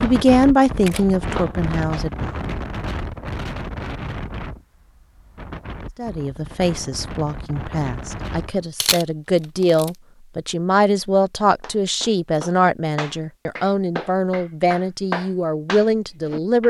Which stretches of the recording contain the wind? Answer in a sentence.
The wind can be heard from 0.0 to 8.7 s.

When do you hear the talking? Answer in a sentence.
You can hear the talking from 0.0 to 2.4 s and from 6.0 to 16.6 s.